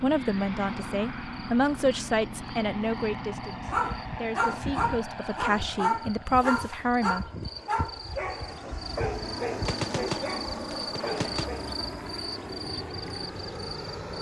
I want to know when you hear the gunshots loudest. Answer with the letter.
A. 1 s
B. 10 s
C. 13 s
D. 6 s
B.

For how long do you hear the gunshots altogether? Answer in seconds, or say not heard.
2 s.